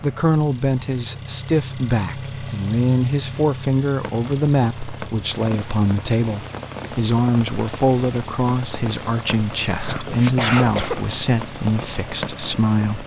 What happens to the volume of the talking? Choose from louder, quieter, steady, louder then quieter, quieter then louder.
steady.